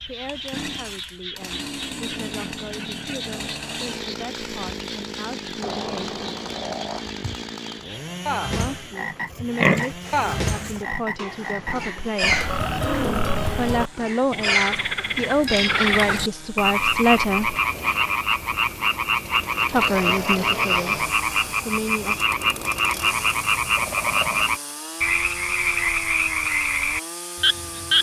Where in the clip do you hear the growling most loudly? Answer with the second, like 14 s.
13 s.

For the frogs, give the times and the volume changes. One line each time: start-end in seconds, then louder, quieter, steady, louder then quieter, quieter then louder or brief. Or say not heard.
0.0-27.9 louder.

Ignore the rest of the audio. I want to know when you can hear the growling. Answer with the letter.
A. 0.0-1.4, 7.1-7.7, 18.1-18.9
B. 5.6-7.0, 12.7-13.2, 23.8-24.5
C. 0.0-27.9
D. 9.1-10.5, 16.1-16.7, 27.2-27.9
B.